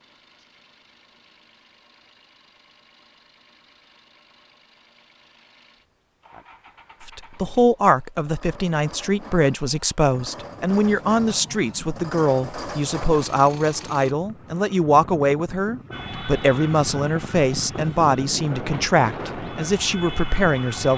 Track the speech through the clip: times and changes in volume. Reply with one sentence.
The speech can be heard from 7.0 to 20.9 s, at a steady volume.